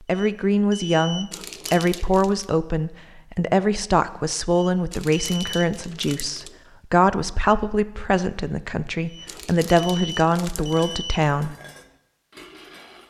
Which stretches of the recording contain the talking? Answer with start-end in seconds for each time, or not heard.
0.1-11.6.